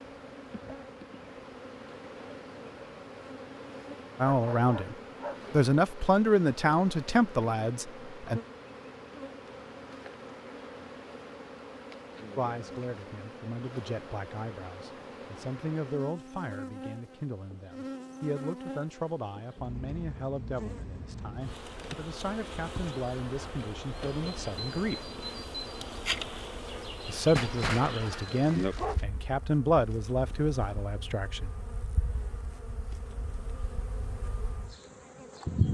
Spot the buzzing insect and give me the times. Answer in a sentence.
The buzzing insect can be heard from 0.0 to 35.6 s.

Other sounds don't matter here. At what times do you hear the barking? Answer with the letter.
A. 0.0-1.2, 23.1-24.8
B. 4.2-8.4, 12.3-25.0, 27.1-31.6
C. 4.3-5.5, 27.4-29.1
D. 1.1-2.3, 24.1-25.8
C.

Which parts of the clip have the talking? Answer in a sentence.
The talking can be heard from 4.2 to 8.4 s, from 12.3 to 25.0 s and from 27.1 to 31.6 s.